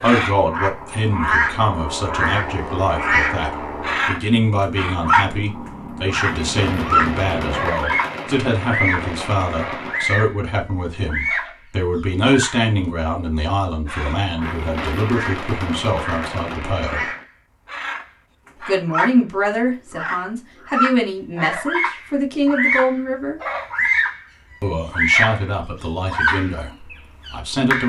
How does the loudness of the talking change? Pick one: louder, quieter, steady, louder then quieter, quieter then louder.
steady.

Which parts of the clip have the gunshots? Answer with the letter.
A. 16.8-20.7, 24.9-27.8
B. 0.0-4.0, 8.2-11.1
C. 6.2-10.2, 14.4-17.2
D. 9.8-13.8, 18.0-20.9
C.